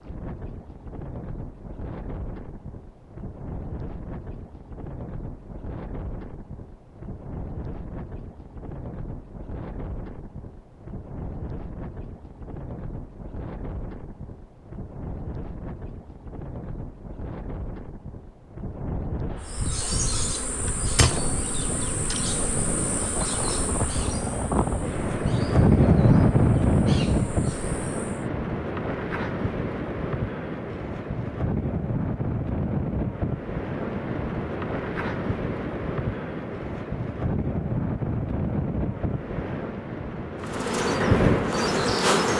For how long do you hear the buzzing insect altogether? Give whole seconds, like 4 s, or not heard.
11 s.